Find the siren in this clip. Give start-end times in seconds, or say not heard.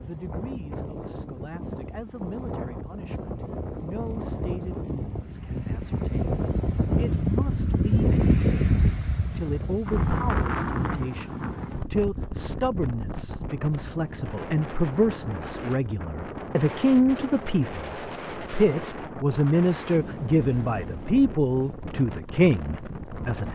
not heard.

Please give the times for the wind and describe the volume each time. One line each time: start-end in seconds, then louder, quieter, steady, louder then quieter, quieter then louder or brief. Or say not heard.
0.0-23.4 louder then quieter.